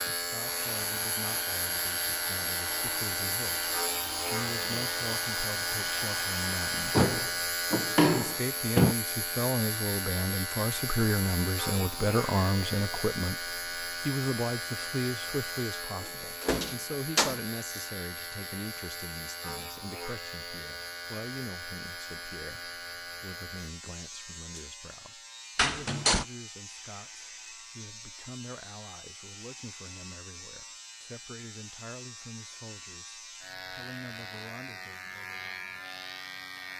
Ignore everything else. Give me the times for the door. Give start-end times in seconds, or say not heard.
6.9-8.9, 16.4-17.4, 25.6-26.2.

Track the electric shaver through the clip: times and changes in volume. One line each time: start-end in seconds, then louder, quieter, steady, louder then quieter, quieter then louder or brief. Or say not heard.
0.0-36.7 quieter.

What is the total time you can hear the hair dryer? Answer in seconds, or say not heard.
7 s.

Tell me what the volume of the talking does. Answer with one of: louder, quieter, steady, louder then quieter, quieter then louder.
louder then quieter.